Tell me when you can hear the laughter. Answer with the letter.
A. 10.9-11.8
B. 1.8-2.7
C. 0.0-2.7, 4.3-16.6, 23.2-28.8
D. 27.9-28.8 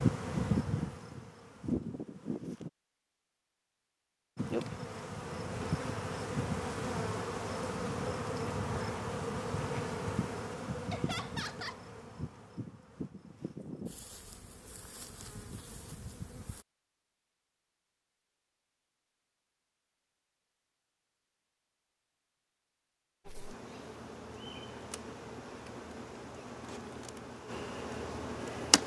A.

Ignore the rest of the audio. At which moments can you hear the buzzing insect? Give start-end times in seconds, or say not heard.
0.0-2.7, 4.3-16.6, 23.2-28.8.